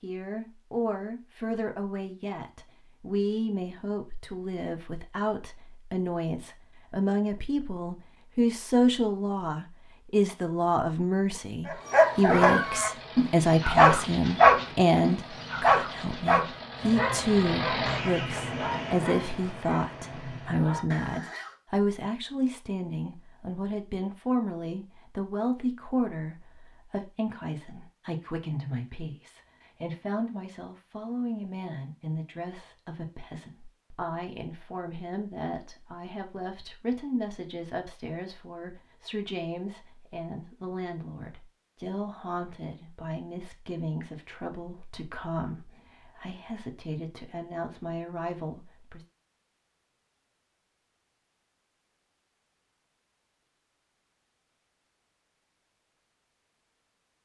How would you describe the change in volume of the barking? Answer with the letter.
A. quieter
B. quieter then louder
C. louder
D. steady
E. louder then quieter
A.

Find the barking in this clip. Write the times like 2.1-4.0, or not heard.
11.7-21.6.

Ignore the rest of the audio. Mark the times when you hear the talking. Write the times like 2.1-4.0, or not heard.
0.0-49.0.